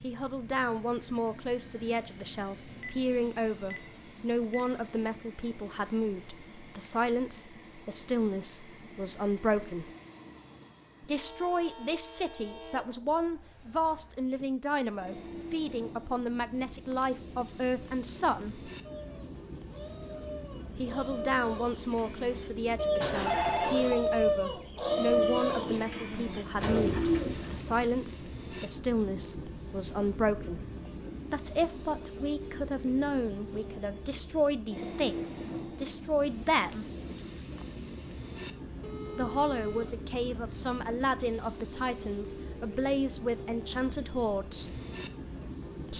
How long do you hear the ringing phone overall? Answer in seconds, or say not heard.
4 s.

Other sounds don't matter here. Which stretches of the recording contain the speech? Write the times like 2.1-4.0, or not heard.
0.0-9.9, 11.0-18.7, 20.8-30.6, 31.3-36.9, 39.1-44.8.